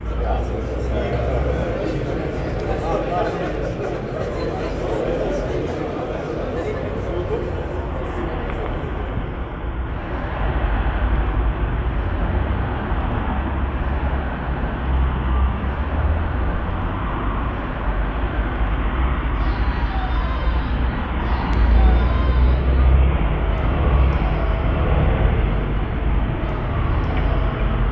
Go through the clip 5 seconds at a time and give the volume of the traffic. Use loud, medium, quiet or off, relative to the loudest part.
medium, medium, loud, loud, loud, loud.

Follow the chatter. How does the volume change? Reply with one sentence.
The loudness of the chatter goes down.